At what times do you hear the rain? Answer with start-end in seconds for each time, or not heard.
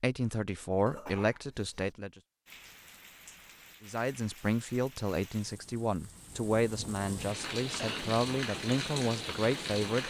2.5-10.0.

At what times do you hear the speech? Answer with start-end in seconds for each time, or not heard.
0.0-2.2, 3.8-10.0.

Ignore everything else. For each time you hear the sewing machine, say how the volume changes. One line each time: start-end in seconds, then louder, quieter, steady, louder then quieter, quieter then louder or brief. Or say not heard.
not heard.